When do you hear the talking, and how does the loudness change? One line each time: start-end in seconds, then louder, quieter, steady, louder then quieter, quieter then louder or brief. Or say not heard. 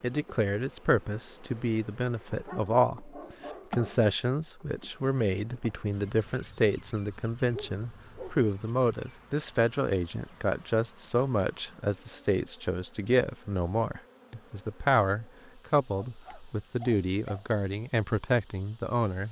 0.0-19.2 steady.